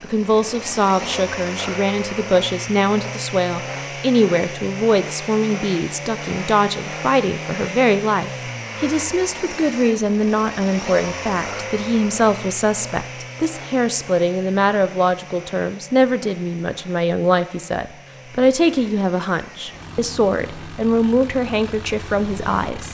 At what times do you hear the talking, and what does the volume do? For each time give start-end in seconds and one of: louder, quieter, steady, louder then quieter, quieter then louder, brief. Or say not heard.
0.0-22.8 steady.